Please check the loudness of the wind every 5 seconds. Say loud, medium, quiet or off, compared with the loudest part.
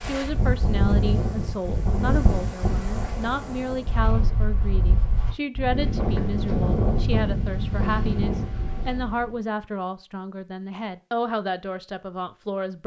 loud, loud, off.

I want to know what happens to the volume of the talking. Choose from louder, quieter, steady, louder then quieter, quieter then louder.
steady.